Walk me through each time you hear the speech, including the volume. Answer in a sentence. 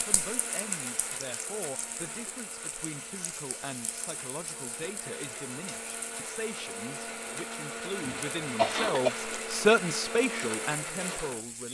You can hear the speech from 0.1 to 11.7 s, getting louder.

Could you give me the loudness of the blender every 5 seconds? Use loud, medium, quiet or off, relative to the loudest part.
medium, loud, loud.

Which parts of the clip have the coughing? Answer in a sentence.
The coughing can be heard from 8.0 to 9.1 s.